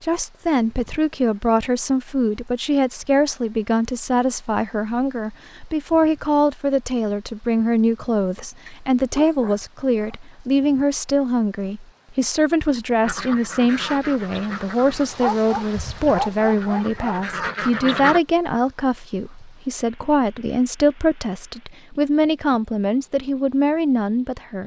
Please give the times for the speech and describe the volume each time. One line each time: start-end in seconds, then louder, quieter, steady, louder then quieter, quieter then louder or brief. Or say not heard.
0.0-24.6 steady.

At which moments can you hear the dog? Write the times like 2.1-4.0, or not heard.
8.7-10.2, 15.2-17.2.